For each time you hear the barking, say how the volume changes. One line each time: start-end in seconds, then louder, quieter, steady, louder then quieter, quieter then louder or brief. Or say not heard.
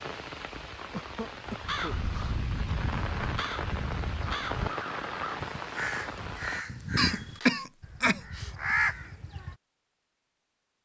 not heard.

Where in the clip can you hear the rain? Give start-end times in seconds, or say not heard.
0.0-6.7.